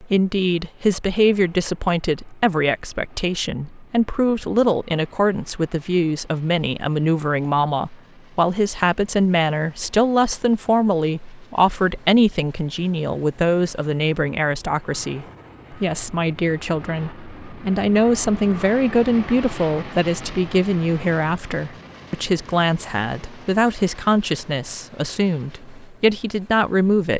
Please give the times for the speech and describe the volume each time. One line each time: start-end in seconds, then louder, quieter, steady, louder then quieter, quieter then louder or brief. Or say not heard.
0.0-27.1 steady.